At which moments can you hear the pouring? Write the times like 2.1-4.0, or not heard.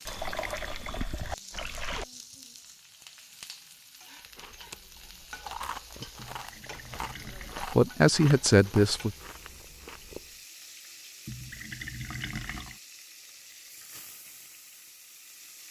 0.1-2.0, 6.2-7.5, 11.2-12.8.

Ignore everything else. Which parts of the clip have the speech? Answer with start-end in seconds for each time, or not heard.
7.6-9.2.